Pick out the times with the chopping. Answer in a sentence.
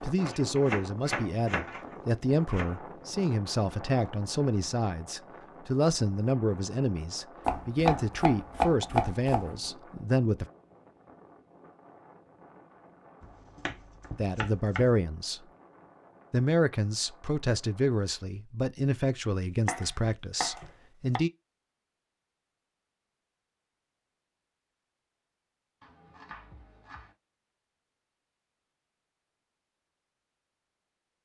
You can hear the chopping from 0.2 to 2.8 s, from 7.5 to 9.7 s, from 13.2 to 14.9 s, from 19.6 to 21.2 s and from 25.8 to 27.1 s.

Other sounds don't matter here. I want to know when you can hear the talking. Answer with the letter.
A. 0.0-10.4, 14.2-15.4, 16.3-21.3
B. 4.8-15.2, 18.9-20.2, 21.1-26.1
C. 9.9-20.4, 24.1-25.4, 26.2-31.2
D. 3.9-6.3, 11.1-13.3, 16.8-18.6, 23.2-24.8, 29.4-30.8
A.